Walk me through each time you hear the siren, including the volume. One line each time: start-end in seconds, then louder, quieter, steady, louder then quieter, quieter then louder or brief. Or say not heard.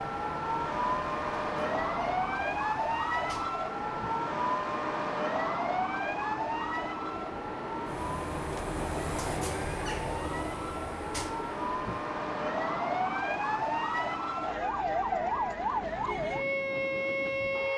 0.0-17.7 quieter then louder.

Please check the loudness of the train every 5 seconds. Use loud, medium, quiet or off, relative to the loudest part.
medium, loud, loud, medium.